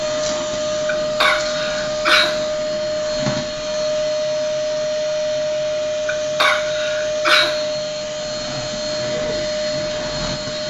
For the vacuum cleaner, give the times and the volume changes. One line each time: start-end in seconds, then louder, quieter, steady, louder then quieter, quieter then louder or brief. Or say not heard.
0.0-10.6 steady.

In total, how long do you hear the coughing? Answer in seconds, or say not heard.
3 s.